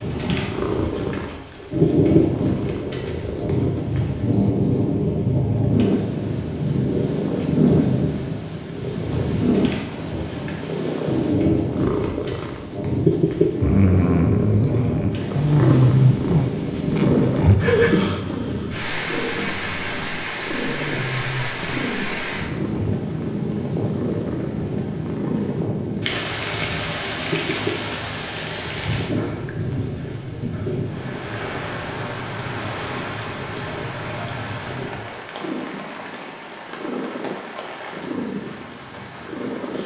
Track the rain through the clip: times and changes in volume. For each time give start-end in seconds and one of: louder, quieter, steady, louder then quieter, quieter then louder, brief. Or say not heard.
0.0-39.8 quieter.